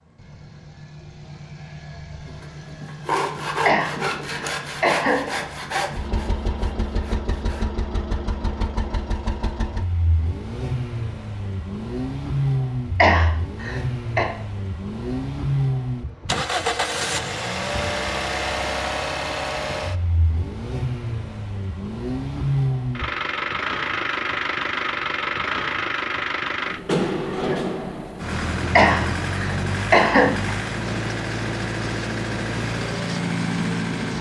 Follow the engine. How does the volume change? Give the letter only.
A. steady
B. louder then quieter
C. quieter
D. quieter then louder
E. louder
E.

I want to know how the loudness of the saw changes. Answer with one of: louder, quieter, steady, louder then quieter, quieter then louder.
quieter.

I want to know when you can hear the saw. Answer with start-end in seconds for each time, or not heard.
2.2-7.7.